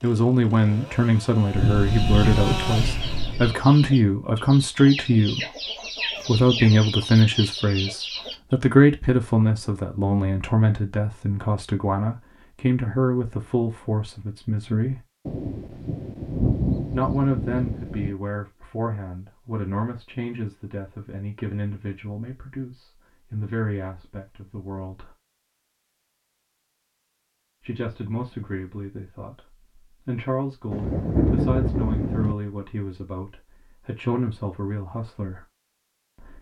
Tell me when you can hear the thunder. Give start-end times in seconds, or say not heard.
1.5-3.5, 15.2-18.1, 30.7-32.4.